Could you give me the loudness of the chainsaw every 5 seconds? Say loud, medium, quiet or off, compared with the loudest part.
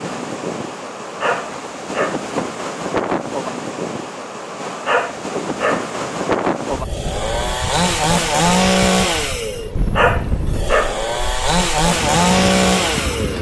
off, loud, loud.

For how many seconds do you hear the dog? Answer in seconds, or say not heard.
3 s.